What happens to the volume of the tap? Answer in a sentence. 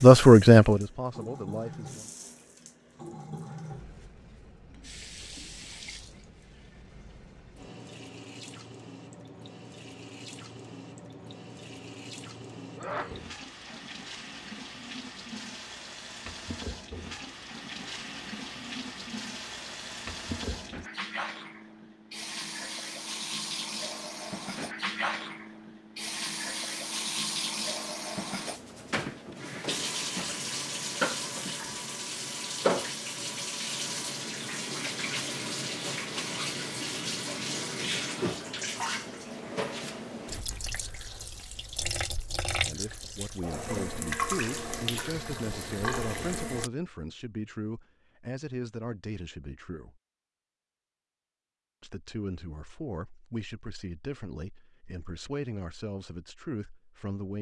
The volume of the tap goes up.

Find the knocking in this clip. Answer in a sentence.
The knocking can't be heard in this clip.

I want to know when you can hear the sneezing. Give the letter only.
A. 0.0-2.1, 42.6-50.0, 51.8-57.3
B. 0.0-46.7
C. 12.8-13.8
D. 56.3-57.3
C.